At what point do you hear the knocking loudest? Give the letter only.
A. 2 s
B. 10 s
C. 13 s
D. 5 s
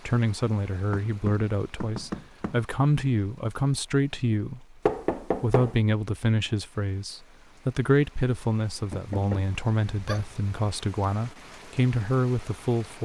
D.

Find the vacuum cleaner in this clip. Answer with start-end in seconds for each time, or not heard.
not heard.